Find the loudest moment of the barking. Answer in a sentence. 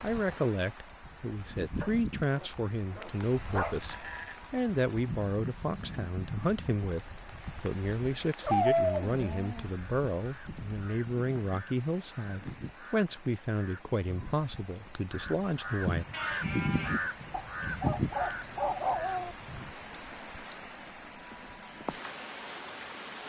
The loudest moment of the barking is at 9 seconds.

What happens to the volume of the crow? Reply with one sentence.
The volume of the crow goes up.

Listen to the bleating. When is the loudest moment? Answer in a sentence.
The loudest moment of the bleating is at 17 seconds.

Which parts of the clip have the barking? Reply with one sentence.
You can hear the barking from 1.8 to 3.8 s, from 8.4 to 9.7 s and from 17.3 to 19.4 s.